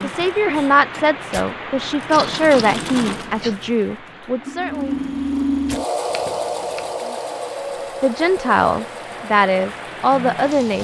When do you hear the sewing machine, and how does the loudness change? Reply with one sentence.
The sewing machine can be heard from 0.0 to 10.7 s, getting louder then quieter.